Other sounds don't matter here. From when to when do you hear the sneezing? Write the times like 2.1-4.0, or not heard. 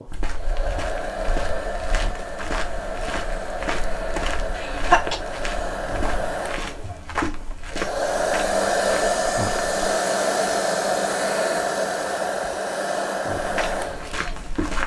4.5-5.2.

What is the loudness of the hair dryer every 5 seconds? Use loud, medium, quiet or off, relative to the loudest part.
medium, loud, loud.